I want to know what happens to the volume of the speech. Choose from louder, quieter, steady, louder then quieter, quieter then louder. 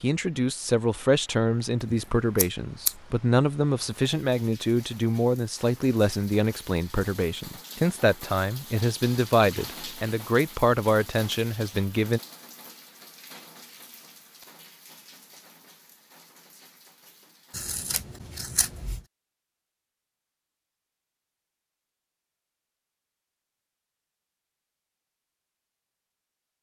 steady.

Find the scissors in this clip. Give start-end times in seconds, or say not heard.
1.9-3.0, 17.5-19.0.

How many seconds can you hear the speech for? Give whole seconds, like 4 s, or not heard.
12 s.